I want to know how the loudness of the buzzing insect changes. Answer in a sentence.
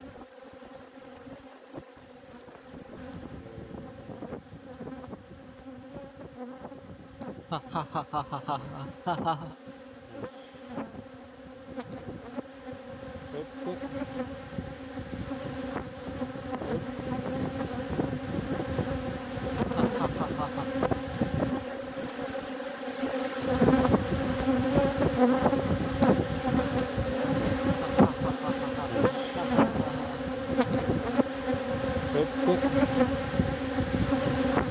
The loudness of the buzzing insect goes up.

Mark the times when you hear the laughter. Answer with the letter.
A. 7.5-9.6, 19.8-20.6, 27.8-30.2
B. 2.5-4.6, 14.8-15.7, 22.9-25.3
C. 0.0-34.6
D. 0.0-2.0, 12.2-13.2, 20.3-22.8
A.